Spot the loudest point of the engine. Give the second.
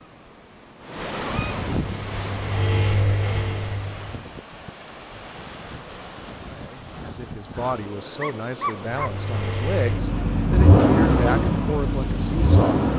11 s.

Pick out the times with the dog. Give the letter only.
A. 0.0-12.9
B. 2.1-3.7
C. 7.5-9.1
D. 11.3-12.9
C.